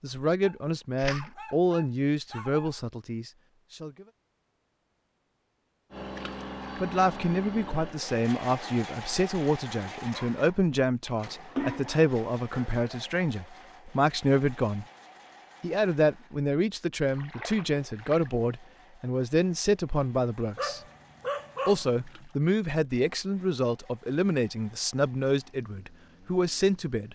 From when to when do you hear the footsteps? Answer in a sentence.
You can't hear the footsteps here.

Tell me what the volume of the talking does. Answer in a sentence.
The volume of the talking stays about the same.